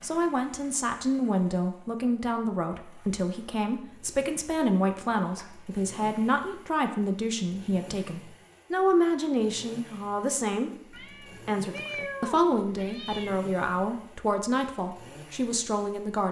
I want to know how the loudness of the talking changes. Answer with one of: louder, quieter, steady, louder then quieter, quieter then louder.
steady.